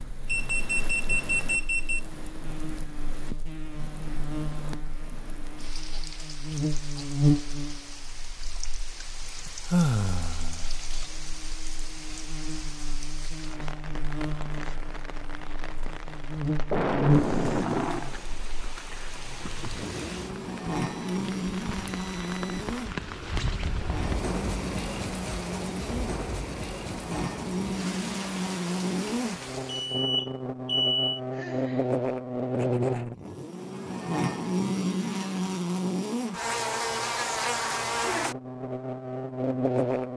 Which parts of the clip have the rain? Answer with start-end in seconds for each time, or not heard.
0.0-30.1.